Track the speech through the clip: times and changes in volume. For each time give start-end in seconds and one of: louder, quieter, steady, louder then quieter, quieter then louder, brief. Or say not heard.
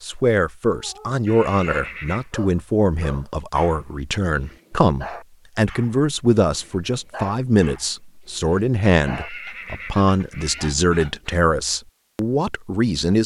0.0-13.2 steady.